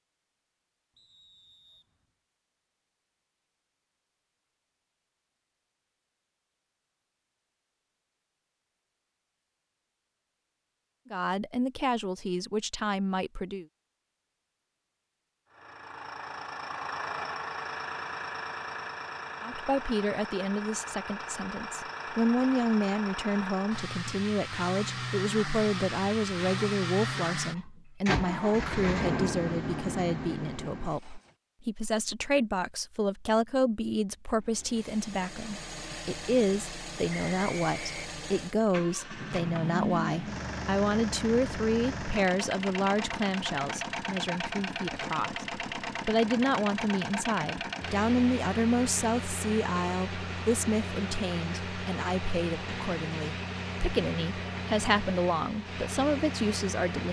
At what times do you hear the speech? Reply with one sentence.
The speech can be heard from 11.1 to 13.7 s and from 19.4 to 57.0 s.